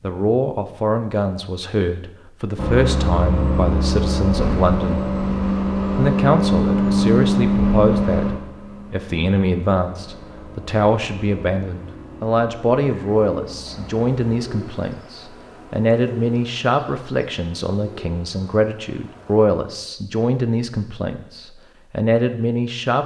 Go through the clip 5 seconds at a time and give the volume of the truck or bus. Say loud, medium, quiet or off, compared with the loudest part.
loud, loud, quiet, off, off.